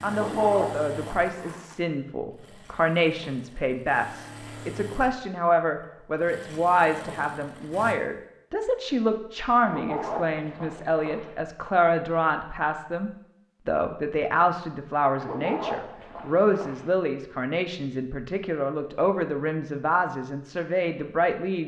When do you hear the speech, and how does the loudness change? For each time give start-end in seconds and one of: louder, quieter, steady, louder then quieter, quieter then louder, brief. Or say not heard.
0.0-21.6 steady.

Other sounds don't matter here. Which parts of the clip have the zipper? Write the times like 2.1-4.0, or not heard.
0.1-1.3, 9.6-11.3, 15.2-16.9.